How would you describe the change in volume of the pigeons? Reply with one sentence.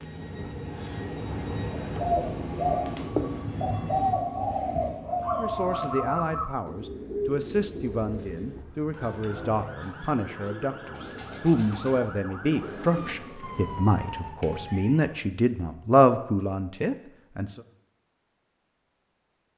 The volume of the pigeons goes down.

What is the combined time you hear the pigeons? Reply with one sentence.
The pigeons can be heard for 12 seconds in total.